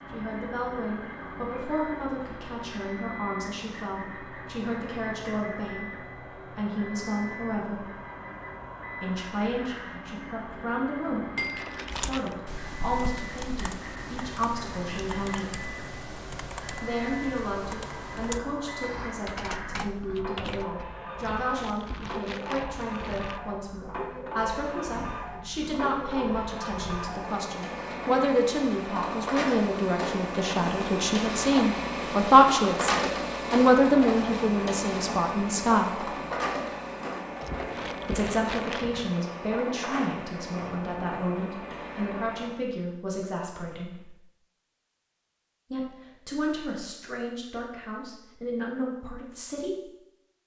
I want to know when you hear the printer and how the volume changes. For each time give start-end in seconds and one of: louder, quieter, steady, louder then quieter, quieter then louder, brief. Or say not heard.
0.0-42.5 louder.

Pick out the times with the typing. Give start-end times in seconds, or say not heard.
11.9-20.9.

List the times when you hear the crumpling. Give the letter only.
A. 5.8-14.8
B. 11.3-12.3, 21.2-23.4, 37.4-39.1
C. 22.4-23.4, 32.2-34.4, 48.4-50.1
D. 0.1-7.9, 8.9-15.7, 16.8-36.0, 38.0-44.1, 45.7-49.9
B.